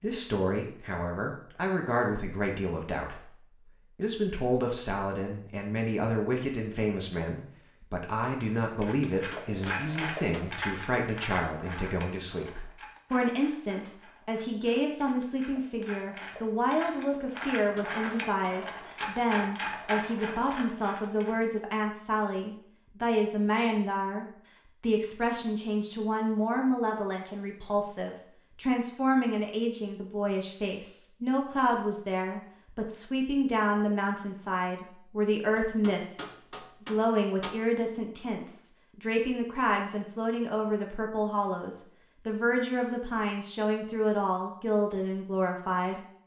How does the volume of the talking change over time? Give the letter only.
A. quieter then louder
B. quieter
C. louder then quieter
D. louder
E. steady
E.